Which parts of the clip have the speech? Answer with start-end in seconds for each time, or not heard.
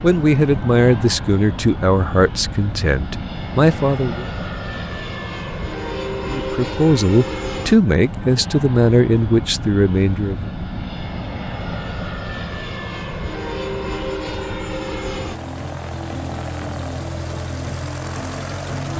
0.0-4.2, 6.2-10.5.